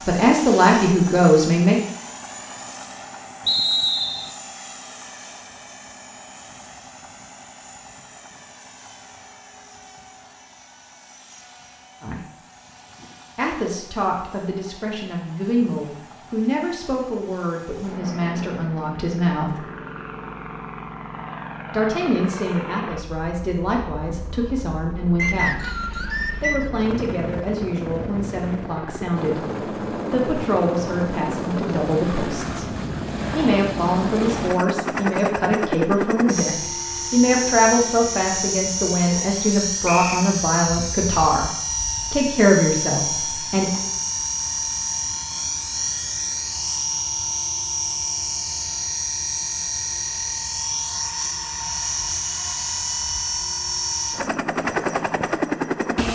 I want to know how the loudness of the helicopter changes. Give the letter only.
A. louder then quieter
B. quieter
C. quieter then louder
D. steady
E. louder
E.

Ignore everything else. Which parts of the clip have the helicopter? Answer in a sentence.
The helicopter can be heard from 0.0 to 56.0 s.